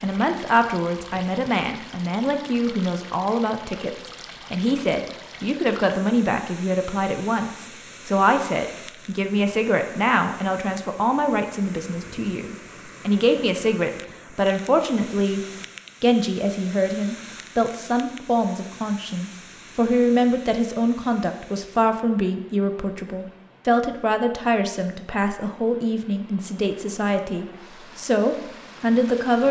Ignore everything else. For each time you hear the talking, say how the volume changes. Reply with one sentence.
You can hear the talking from 0.0 to 29.4 s, at a steady volume.